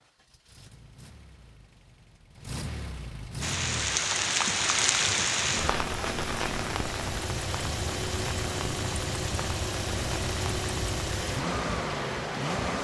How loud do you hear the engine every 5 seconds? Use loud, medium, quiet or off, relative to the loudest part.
medium, loud, loud.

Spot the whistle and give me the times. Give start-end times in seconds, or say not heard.
not heard.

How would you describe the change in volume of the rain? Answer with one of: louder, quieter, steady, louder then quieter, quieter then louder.
quieter.